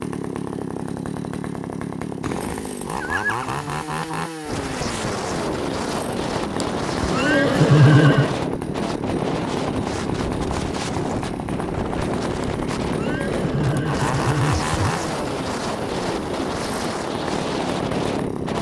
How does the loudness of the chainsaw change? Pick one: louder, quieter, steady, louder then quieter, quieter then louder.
steady.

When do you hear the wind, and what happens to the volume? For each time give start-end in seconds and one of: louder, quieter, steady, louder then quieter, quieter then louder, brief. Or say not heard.
4.5-18.5 steady.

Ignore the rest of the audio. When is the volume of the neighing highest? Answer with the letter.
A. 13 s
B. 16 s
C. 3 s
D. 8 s
D.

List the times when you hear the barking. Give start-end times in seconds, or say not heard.
not heard.